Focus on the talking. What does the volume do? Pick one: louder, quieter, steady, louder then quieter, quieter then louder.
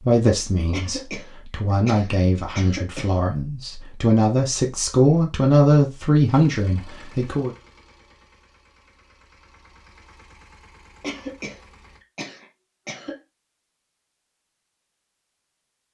louder.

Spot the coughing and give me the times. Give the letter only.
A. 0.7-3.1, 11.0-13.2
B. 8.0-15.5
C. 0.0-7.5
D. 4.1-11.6
A.